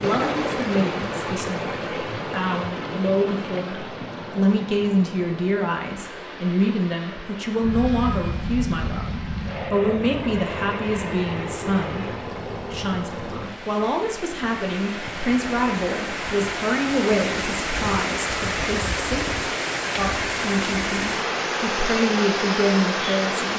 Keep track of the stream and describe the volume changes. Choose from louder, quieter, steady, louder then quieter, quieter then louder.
quieter then louder.